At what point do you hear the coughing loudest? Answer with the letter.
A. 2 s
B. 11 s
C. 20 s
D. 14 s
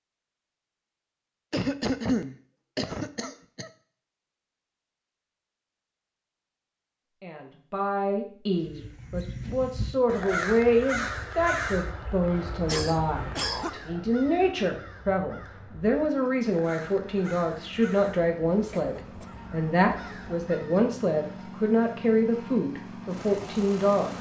A.